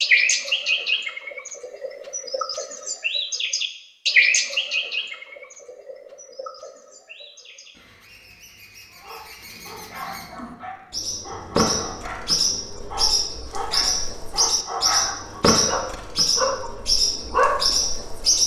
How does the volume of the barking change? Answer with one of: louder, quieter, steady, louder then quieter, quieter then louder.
louder.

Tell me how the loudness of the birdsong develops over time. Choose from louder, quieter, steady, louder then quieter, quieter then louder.
quieter then louder.